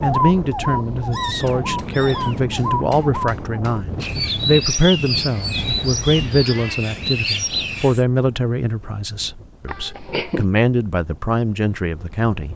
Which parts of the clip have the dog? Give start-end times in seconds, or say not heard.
not heard.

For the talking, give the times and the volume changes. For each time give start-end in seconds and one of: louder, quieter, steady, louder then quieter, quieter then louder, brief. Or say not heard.
0.0-12.5 steady.